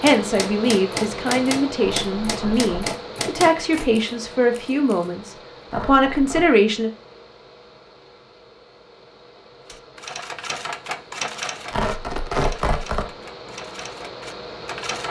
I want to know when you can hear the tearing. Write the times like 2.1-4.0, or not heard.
1.8-3.0, 5.7-6.5, 11.7-13.1.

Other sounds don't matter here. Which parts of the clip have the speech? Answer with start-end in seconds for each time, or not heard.
0.0-6.9.